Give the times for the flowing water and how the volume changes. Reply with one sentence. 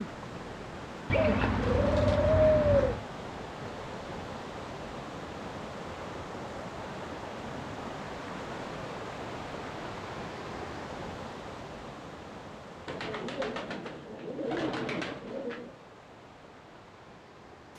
You can hear the flowing water from 0.0 to 17.7 s, getting quieter.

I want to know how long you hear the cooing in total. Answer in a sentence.
The cooing can be heard for 5 seconds in total.